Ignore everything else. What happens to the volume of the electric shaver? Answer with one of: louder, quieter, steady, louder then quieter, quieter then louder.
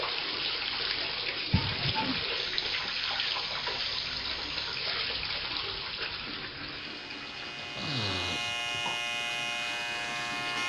louder.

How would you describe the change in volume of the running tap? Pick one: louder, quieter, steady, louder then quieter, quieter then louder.
quieter.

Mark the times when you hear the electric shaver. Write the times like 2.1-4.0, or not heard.
2.4-10.6.